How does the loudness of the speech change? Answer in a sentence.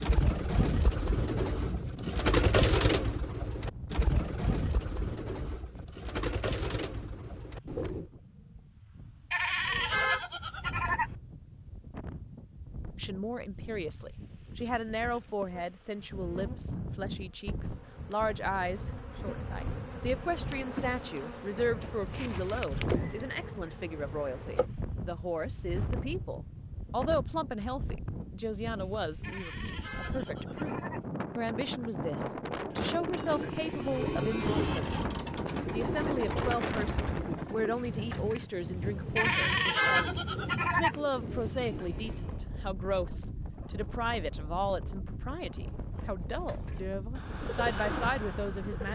The volume of the speech stays about the same.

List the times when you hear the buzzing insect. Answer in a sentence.
You can hear the buzzing insect from 15.1 to 24.6 s.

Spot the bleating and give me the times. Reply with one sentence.
You can hear the bleating from 9.3 to 11.2 s, from 29.2 to 31.1 s and from 39.1 to 41.0 s.